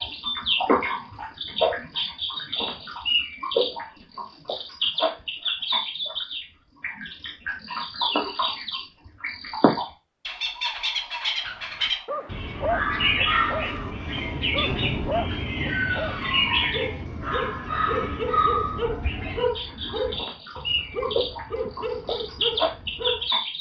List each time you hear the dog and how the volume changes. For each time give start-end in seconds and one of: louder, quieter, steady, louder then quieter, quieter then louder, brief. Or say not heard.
11.4-23.3 steady.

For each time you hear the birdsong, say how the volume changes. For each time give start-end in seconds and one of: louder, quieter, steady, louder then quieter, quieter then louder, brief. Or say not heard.
0.0-23.5 steady.